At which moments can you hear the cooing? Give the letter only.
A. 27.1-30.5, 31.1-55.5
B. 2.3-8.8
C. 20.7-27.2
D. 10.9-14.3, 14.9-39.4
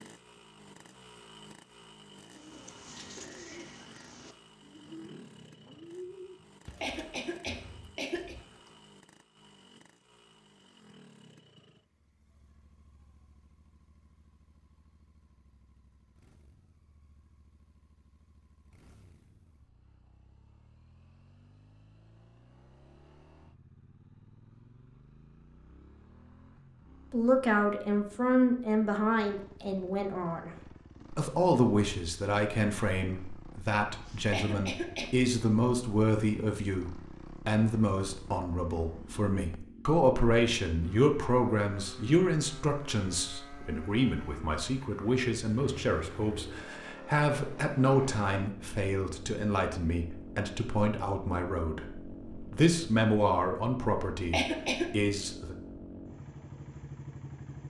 B.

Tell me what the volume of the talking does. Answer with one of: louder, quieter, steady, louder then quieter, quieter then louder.
steady.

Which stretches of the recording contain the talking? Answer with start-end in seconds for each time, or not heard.
27.1-30.5, 31.1-55.5.